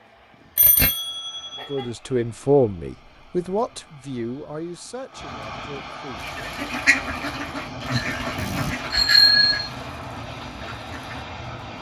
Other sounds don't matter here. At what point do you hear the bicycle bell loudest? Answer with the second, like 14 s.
9 s.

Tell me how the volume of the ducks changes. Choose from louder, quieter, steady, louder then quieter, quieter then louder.
quieter.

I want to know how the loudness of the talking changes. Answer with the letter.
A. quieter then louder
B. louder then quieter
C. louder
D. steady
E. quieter
E.